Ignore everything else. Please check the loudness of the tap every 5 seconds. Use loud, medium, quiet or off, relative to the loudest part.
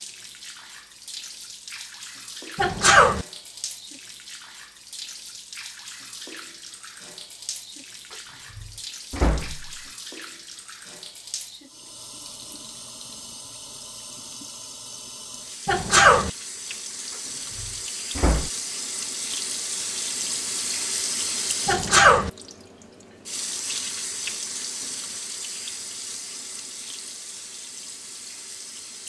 medium, medium, medium, loud, loud, medium.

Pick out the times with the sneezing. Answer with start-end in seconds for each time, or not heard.
2.5-3.2, 15.7-16.3, 21.6-22.3.